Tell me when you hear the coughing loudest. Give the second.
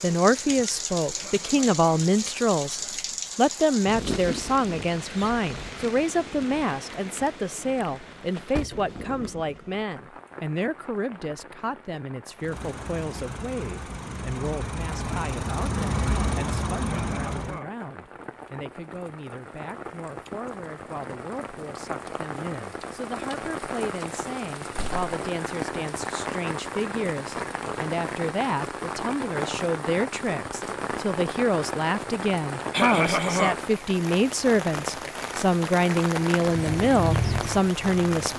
33 s.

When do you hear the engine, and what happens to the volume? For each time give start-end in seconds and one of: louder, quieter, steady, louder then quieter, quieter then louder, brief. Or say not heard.
12.3-17.6 louder
36.4-38.0 brief.